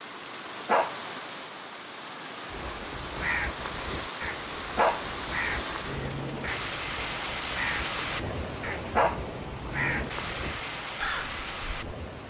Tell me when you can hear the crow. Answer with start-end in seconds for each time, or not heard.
2.5-11.8.